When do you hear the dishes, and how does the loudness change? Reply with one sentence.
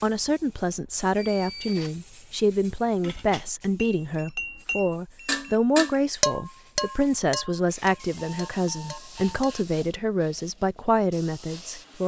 The dishes can be heard from 2.9 to 9.7 s, getting louder then quieter.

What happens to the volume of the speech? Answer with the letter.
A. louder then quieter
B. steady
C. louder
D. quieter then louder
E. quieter
B.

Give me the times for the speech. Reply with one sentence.
The speech can be heard from 0.0 to 12.0 s.